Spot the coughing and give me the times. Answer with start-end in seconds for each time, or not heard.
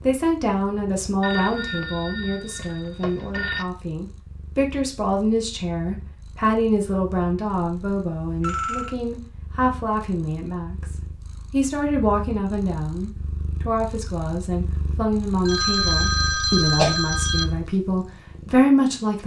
15.8-16.9.